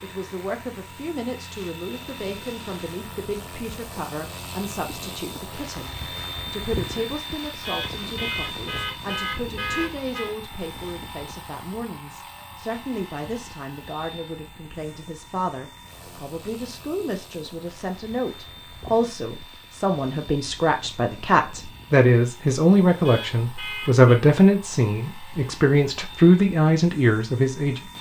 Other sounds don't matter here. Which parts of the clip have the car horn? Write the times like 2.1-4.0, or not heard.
7.6-10.3, 23.1-24.2.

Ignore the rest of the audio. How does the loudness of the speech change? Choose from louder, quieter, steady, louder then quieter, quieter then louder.
louder.